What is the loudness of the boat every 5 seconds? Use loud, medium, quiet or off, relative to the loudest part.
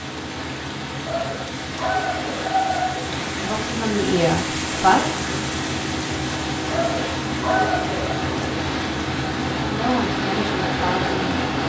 medium, loud, loud.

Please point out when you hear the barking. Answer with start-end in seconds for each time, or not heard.
1.1-3.0, 6.7-8.2.